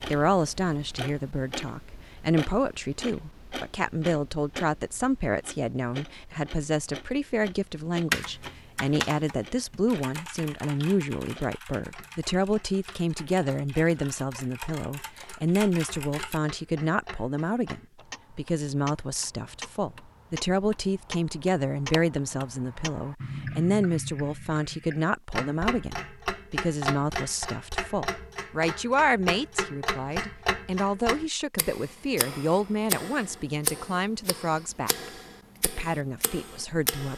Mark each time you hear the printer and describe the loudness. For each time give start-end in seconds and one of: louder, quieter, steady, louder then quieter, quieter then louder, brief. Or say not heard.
not heard.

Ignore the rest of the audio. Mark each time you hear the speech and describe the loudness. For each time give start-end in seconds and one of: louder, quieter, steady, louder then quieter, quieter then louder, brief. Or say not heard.
0.1-37.1 steady.